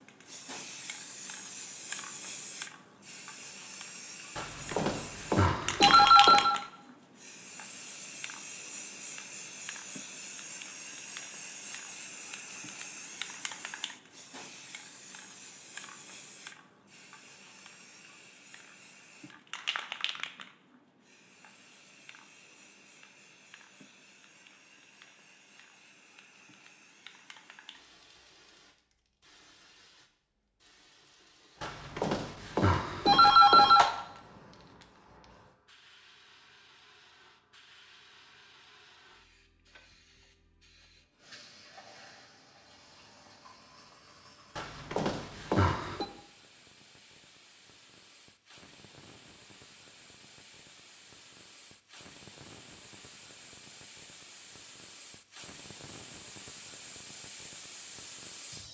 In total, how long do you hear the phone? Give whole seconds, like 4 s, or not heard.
6 s.